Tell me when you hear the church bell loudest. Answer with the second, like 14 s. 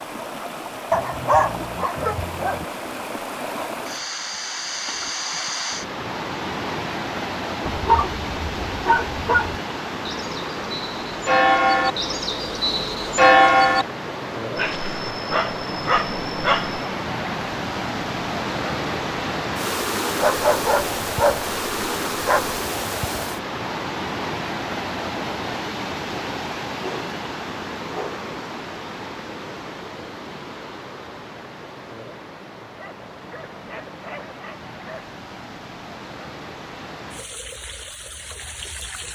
13 s.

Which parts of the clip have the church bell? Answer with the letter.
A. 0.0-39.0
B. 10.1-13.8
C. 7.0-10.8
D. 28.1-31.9
B.